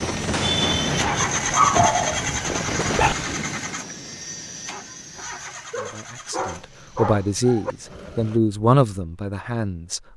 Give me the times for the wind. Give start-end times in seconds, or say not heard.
0.0-5.3.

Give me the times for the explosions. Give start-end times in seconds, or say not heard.
0.3-3.5.